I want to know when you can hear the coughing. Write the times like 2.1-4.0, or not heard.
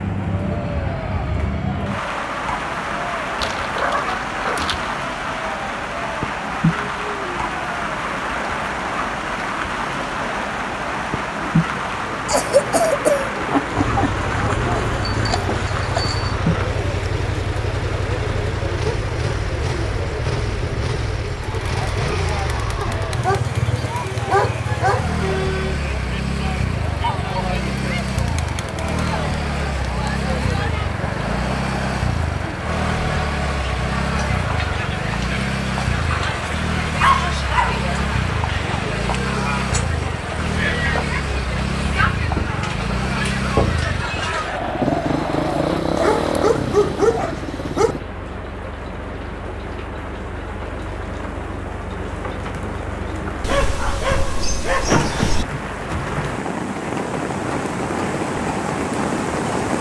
12.2-13.3.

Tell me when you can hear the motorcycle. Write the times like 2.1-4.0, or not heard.
13.7-48.0.